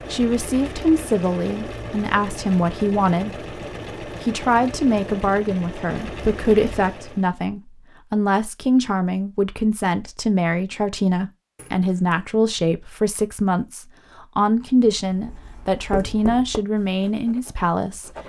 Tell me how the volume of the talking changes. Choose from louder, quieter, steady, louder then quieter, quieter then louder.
steady.